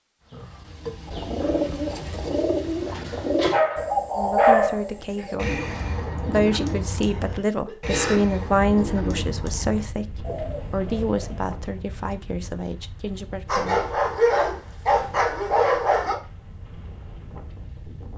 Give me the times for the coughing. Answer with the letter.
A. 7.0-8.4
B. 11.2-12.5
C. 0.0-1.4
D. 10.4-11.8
A.